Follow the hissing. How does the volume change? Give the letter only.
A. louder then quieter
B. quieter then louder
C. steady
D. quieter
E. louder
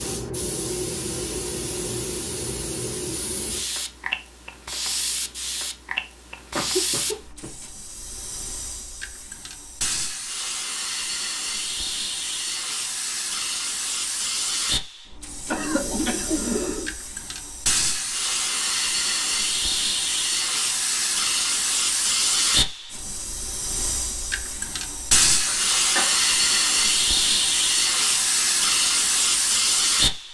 E.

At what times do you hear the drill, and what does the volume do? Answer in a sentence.
You can't hear the drill here.